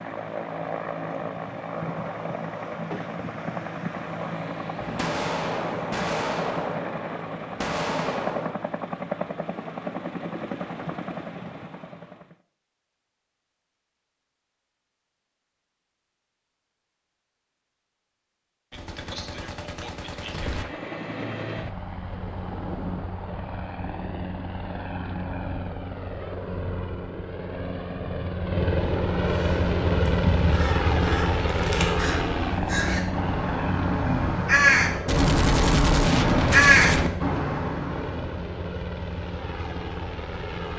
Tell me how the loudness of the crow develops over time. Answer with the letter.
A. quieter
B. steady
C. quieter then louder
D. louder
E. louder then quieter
D.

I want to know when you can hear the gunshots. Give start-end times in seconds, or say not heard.
4.8-8.6, 18.7-20.6, 35.0-37.1.